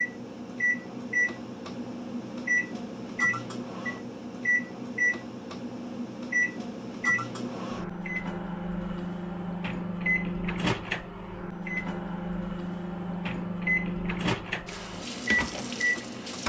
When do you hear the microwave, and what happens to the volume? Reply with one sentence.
The microwave can be heard from 0.0 to 16.4 s, at a steady volume.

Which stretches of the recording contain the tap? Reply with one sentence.
The tap can be heard from 14.7 to 16.4 s.